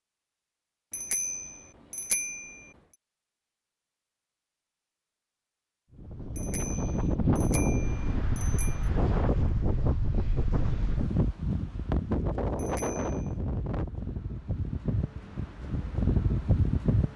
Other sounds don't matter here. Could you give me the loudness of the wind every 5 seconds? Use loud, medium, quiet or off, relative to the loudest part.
off, loud, loud, loud.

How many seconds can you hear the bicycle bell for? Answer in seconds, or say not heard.
5 s.